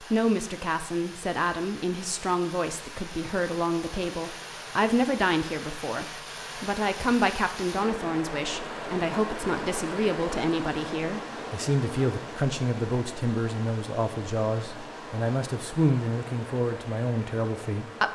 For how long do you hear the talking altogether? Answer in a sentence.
The talking can be heard for 18 seconds in total.